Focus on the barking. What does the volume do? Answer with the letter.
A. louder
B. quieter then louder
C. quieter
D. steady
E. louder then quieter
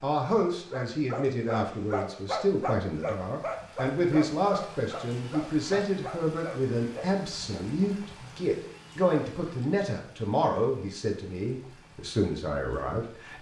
C.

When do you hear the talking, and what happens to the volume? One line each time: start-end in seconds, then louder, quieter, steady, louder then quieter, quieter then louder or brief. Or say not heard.
0.0-13.3 steady.